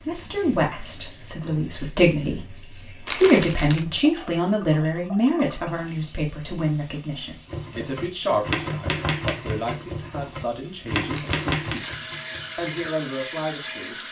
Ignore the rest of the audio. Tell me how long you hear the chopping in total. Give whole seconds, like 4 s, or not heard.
5 s.